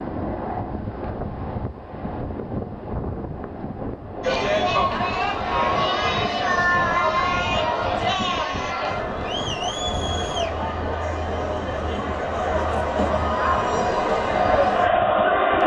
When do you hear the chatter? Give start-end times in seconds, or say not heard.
4.2-15.6.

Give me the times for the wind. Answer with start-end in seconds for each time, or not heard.
0.0-15.6.